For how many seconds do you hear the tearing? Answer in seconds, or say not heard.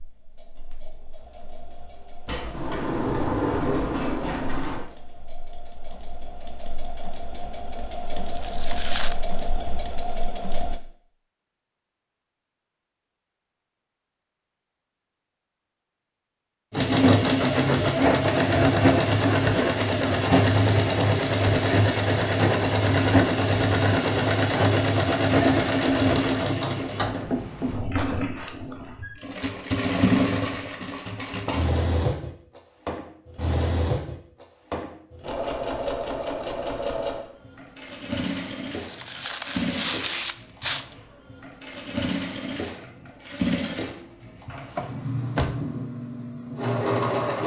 3 s.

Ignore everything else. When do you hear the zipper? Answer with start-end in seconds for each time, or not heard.
not heard.